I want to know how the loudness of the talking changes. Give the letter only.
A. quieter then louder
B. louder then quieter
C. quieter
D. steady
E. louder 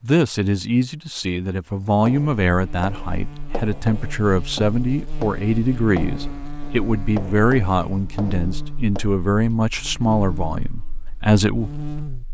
D.